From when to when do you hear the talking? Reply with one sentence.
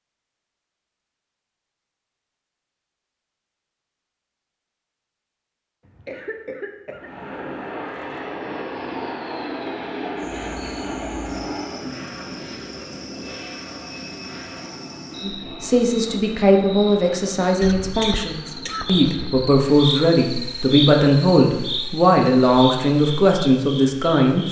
The talking can be heard from 15.2 to 24.4 s.